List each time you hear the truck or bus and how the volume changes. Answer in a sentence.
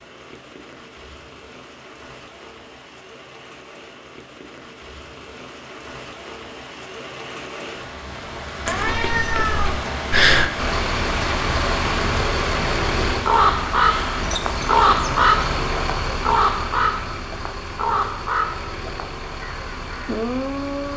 You can hear the truck or bus from 10.6 to 20.9 s, getting quieter.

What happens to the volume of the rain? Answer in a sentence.
The loudness of the rain goes up.